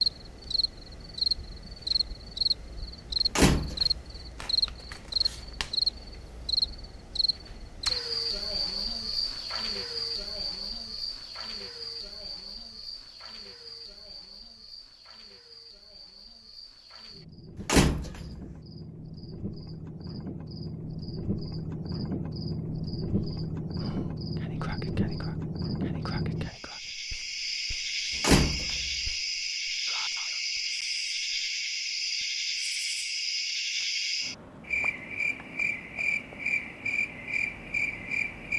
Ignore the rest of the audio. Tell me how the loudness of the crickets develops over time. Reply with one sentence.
The loudness of the crickets goes down, then up.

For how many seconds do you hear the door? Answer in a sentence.
You can hear the door for 2 seconds altogether.